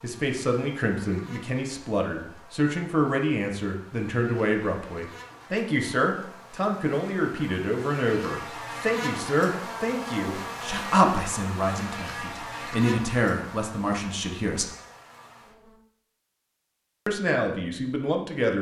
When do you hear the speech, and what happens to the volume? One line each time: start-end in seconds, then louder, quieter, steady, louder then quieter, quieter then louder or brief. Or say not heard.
0.0-14.7 steady
17.1-18.5 brief.